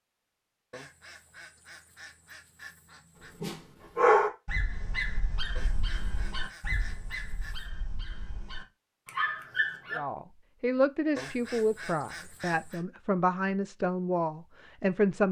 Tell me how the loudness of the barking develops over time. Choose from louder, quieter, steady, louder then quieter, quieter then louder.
quieter then louder.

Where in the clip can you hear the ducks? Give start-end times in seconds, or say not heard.
0.7-3.4, 5.5-7.7, 11.2-12.8.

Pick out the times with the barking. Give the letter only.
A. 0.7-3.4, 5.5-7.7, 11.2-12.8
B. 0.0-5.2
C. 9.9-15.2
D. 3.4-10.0
D.